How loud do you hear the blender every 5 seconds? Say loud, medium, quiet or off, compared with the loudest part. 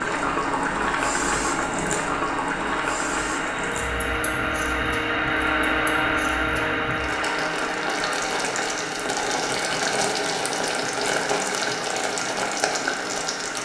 loud, loud, medium.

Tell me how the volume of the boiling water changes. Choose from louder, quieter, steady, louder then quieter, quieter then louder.
quieter then louder.